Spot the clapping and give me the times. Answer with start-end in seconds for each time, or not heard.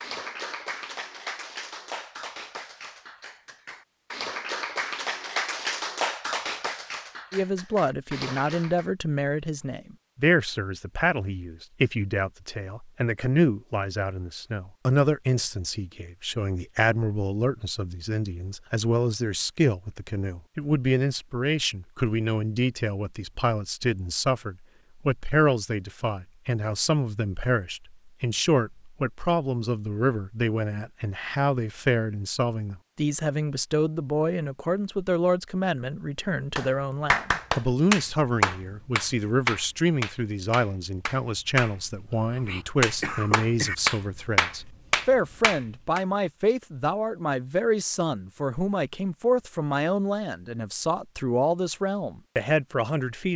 0.0-8.8, 36.5-46.0.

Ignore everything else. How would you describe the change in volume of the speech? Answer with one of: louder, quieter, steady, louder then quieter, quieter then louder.
steady.